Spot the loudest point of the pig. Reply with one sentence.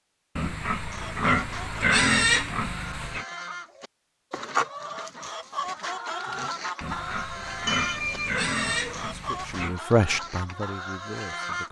The volume of the pig peaks at 2 seconds.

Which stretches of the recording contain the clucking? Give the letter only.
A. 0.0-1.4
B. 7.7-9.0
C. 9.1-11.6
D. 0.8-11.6
D.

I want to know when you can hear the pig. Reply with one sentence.
The pig can be heard from 0.3 to 3.2 s and from 6.8 to 9.8 s.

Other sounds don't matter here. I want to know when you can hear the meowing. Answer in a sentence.
You can hear the meowing from 7.7 to 9.0 s.